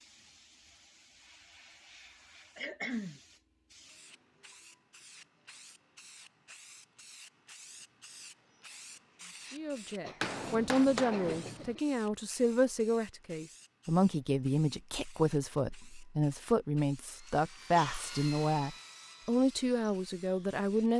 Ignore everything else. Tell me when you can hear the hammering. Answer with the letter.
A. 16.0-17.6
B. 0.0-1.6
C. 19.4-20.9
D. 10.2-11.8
D.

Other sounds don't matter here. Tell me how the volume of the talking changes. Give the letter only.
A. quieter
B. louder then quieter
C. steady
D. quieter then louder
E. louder
C.